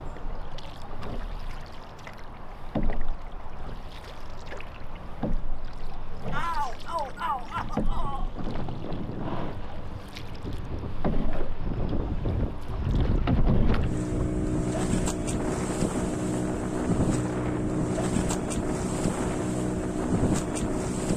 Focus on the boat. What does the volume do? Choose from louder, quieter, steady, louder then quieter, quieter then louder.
louder.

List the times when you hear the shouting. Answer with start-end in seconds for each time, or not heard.
6.3-8.3.